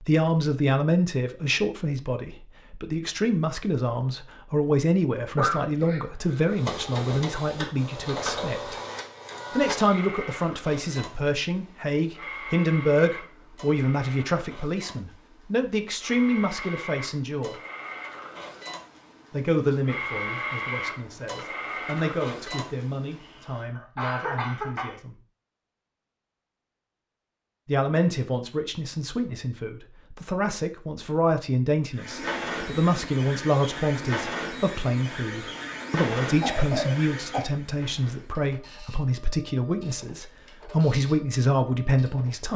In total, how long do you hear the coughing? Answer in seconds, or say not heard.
5 s.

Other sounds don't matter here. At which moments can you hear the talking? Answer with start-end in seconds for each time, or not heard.
0.0-8.8, 9.5-17.6, 19.3-25.1, 27.6-42.5.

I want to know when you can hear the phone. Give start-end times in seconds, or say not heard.
not heard.